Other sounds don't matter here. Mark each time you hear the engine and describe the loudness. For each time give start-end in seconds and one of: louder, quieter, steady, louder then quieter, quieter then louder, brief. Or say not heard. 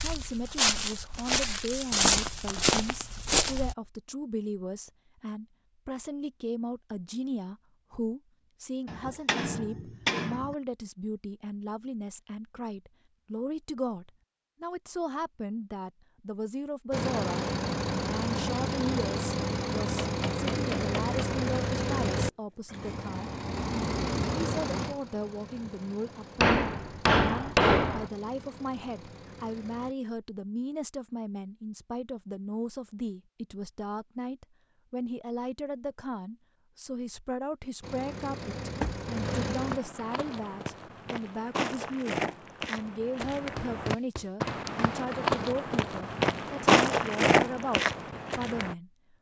16.9-29.9 quieter
37.8-39.8 brief.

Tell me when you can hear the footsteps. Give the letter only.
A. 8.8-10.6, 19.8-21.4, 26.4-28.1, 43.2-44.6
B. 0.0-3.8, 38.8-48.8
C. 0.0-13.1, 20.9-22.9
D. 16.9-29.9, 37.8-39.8
B.